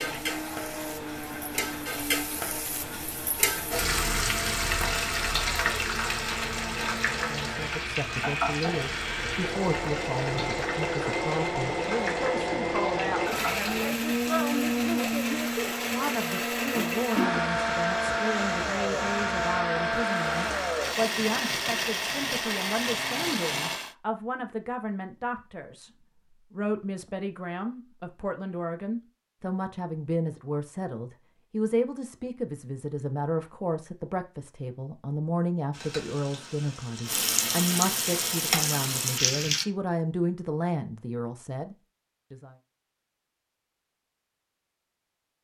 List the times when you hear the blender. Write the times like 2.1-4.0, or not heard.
0.0-23.9.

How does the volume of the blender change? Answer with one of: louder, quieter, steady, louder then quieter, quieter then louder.
louder.